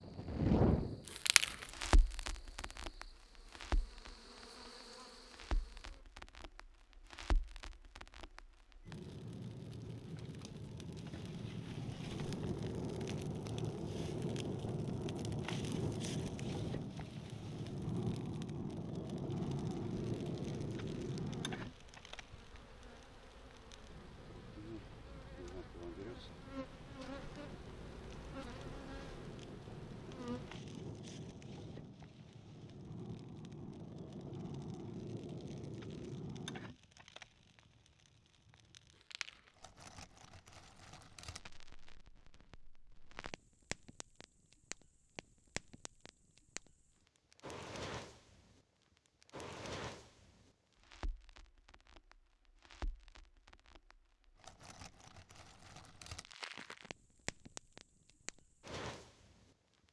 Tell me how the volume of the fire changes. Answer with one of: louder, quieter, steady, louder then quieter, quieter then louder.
quieter.